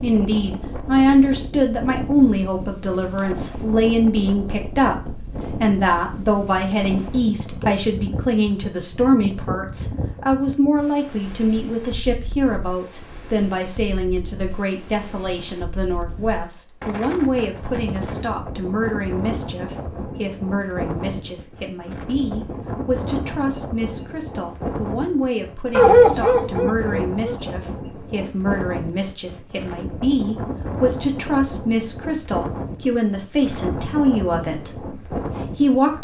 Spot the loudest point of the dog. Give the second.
26 s.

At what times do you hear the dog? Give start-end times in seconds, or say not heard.
25.7-27.4.